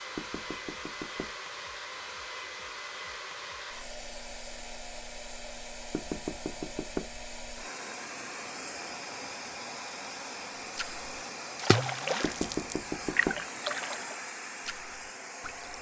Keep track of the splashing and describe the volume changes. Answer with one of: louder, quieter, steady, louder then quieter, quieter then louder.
quieter.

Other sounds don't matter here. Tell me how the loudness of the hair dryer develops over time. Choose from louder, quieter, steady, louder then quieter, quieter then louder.
steady.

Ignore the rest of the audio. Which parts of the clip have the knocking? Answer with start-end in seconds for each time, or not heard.
0.1-1.4, 5.9-7.1, 12.2-13.4.